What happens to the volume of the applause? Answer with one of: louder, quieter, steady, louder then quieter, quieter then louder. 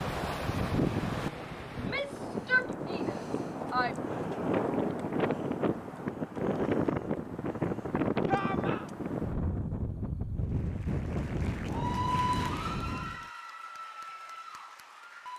louder then quieter.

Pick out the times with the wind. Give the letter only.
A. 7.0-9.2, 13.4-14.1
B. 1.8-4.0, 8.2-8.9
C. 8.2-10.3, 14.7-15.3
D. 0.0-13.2
D.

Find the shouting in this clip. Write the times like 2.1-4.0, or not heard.
1.8-4.0, 8.2-8.9.